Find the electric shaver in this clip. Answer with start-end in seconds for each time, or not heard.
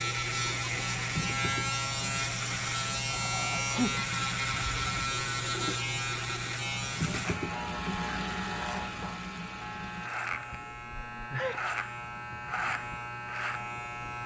0.0-14.2.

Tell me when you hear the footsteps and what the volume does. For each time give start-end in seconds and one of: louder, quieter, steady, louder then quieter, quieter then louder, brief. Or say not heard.
not heard.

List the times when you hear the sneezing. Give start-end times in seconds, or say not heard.
3.1-4.0, 11.3-11.8.